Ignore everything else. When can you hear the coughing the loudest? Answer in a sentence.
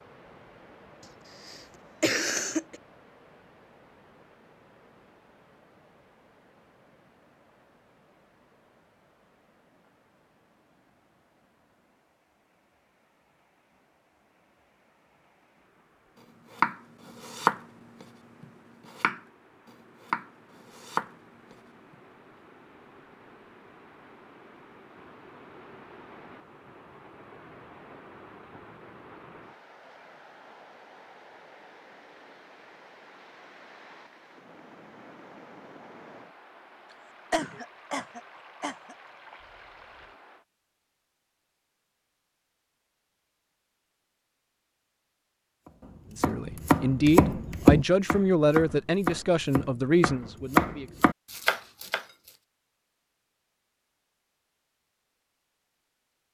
The loudest moment of the coughing is at 2 seconds.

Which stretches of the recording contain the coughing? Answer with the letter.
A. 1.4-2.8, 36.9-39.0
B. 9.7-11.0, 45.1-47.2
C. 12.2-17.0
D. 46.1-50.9
A.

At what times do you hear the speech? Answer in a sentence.
You can hear the speech from 46.1 to 50.9 s.